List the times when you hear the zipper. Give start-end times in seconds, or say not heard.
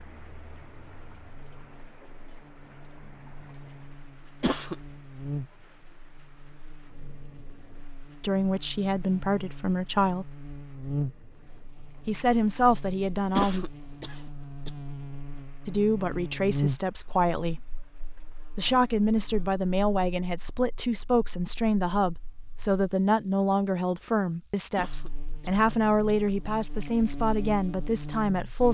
not heard.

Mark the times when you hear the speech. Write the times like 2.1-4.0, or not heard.
8.2-10.3, 12.1-13.7, 15.7-17.6, 18.6-28.7.